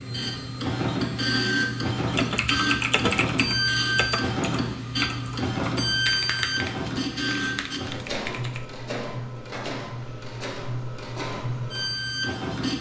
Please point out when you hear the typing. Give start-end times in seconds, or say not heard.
2.1-8.7.